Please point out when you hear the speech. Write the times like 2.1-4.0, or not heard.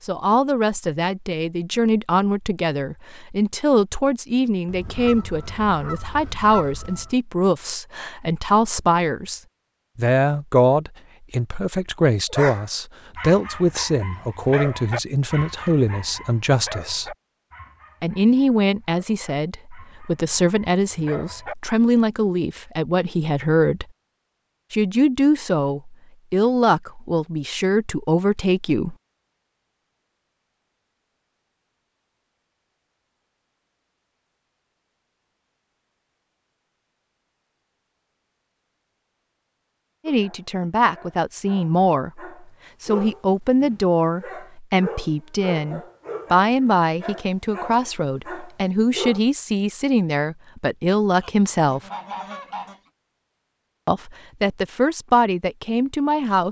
0.0-17.1, 18.0-23.9, 24.7-28.9, 40.0-51.8, 53.9-56.4.